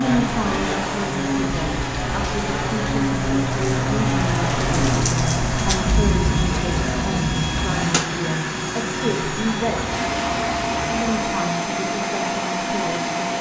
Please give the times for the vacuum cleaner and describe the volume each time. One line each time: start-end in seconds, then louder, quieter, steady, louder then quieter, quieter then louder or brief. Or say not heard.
0.0-13.3 steady.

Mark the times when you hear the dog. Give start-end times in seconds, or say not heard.
not heard.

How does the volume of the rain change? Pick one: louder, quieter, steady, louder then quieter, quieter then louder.
louder then quieter.